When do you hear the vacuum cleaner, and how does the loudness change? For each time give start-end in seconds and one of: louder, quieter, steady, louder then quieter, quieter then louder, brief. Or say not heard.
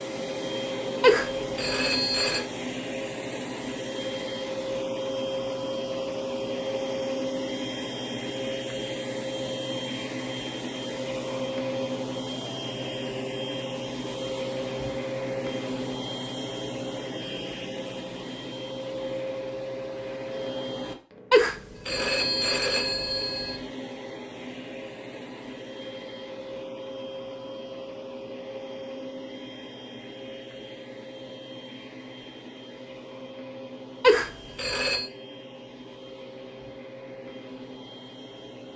0.0-38.7 quieter.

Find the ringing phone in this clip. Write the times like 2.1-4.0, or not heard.
1.0-2.5, 21.3-23.6, 34.0-35.0.